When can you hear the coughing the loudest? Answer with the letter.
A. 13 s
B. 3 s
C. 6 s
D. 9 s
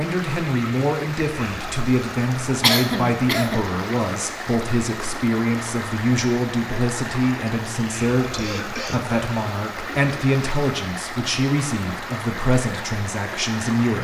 B.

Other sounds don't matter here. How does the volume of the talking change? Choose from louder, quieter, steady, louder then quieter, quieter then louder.
steady.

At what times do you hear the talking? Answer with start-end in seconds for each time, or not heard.
0.0-14.0.